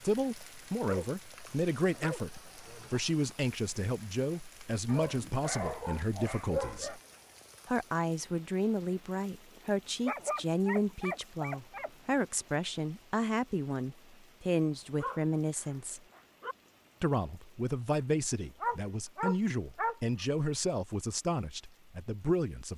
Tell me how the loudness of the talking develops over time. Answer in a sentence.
The volume of the talking stays about the same.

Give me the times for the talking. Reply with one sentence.
The talking can be heard from 0.0 to 7.0 s, from 7.7 to 16.0 s and from 17.0 to 22.7 s.